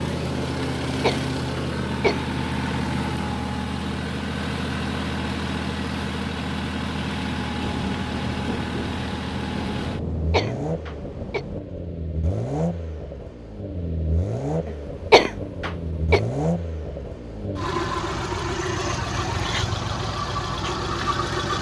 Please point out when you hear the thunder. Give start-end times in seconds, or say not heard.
7.6-11.6.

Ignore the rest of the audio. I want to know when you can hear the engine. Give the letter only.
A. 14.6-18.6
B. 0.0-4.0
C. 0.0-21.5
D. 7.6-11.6
C.